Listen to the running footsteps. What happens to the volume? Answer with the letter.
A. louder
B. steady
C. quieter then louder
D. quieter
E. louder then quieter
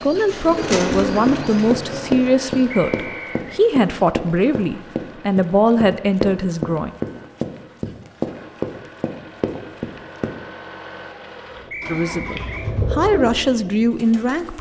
B.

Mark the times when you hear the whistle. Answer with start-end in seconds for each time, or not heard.
2.7-3.6, 11.7-12.7.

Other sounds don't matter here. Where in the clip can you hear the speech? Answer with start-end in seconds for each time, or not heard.
0.0-7.0, 11.9-14.5.